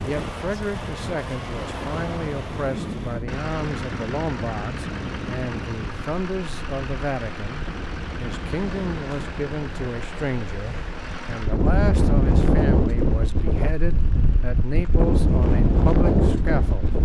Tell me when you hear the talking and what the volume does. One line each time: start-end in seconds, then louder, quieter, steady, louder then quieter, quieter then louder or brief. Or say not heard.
0.0-16.9 steady.